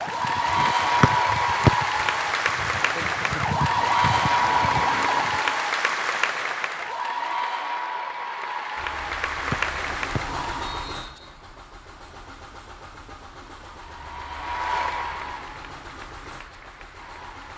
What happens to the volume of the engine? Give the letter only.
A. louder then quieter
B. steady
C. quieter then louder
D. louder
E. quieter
E.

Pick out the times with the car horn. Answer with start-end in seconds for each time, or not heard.
not heard.